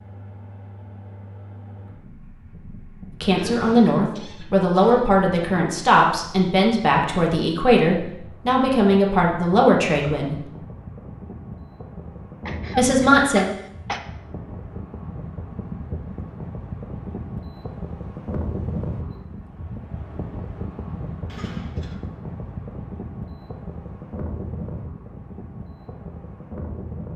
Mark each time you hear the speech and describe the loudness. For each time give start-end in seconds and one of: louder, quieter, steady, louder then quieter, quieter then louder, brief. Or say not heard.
3.2-10.5 steady
12.8-13.4 brief.